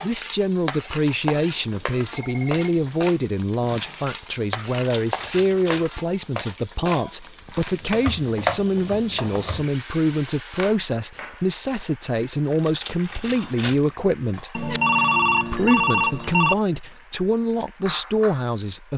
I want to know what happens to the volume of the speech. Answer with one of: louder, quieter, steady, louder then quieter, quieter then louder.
steady.